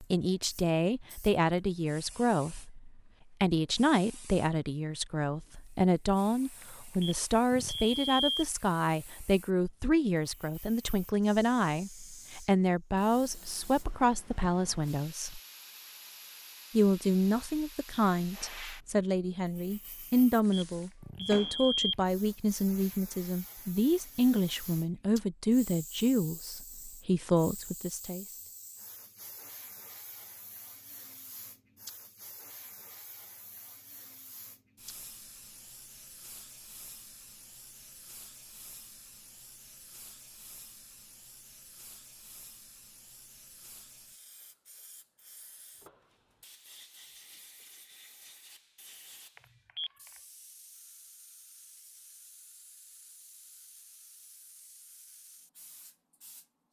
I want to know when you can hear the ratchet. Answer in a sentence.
The ratchet can't be heard in this clip.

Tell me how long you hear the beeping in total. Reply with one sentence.
You can hear the beeping for 4 seconds altogether.